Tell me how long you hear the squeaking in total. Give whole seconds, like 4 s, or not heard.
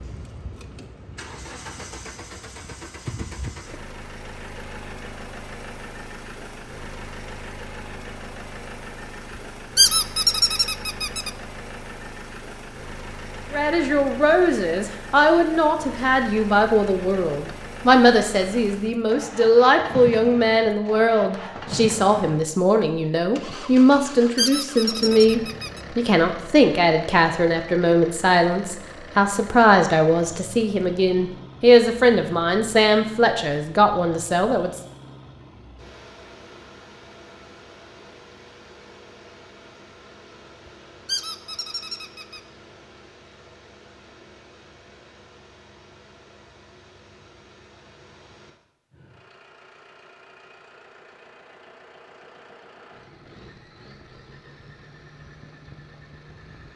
4 s.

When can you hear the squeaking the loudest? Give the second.
10 s.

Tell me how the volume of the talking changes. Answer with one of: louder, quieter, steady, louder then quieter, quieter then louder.
steady.